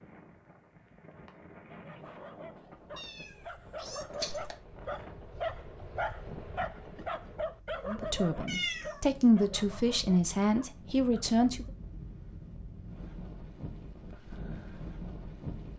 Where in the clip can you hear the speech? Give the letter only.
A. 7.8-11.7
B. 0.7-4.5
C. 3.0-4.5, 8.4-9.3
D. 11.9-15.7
A.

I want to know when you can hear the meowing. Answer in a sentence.
You can hear the meowing from 3.0 to 4.5 s and from 8.4 to 9.3 s.